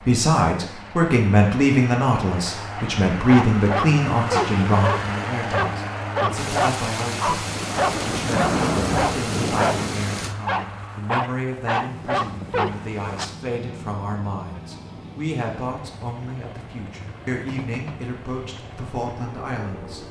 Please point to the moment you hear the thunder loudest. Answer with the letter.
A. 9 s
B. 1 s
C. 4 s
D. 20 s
A.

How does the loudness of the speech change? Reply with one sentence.
The volume of the speech goes down.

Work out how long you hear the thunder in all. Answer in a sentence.
The thunder can be heard for 4 seconds in total.